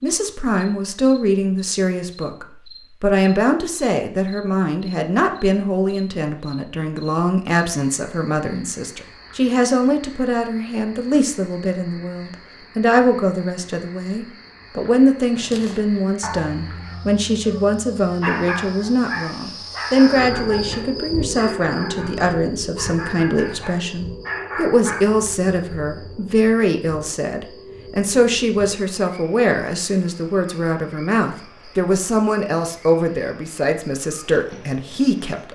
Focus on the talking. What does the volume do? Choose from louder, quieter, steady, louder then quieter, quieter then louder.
steady.